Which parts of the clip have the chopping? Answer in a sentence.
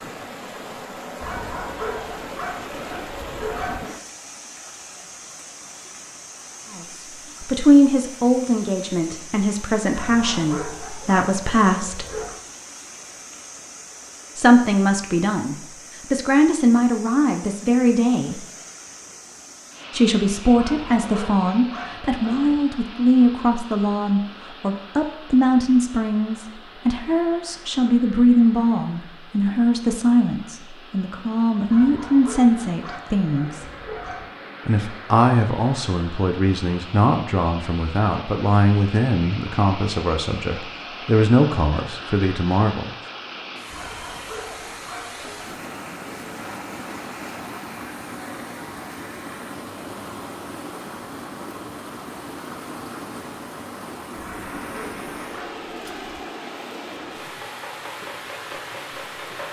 The chopping can be heard from 57.2 to 59.4 s.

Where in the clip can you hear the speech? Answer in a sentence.
The speech can be heard from 6.7 to 12.1 s, from 14.3 to 18.4 s, from 19.9 to 33.6 s and from 34.6 to 43.0 s.